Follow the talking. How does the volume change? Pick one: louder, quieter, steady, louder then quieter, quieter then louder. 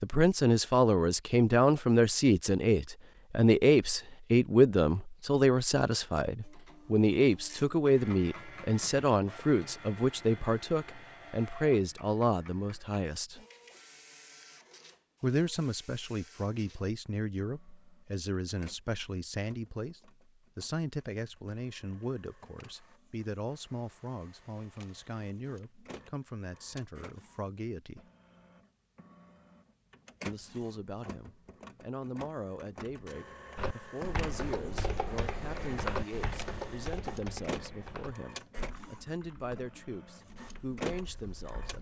quieter.